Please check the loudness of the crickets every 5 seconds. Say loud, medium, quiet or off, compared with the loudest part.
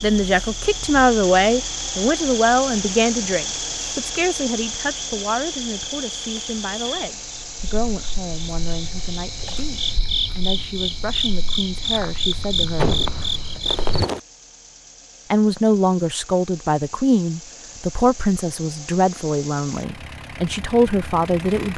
medium, medium, loud, off, off.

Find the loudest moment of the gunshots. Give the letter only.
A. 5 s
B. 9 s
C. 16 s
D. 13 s
D.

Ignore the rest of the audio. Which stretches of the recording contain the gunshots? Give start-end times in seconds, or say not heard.
12.3-14.2.